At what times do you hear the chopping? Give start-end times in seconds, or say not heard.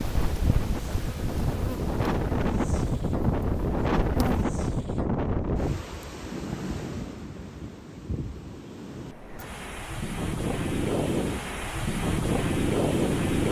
not heard.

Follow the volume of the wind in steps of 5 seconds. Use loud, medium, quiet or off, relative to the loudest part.
loud, medium, loud.